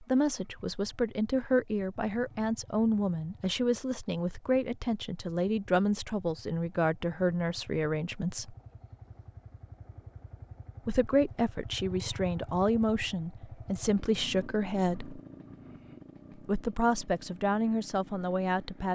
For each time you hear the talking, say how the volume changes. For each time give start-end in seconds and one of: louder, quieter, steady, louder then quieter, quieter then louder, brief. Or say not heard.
0.0-8.6 steady
10.8-15.2 steady
16.4-18.9 brief.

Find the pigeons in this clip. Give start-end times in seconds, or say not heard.
not heard.